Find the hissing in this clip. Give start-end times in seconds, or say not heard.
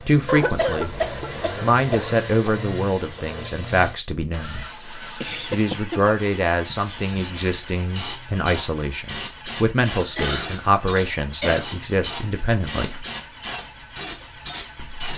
0.0-15.1.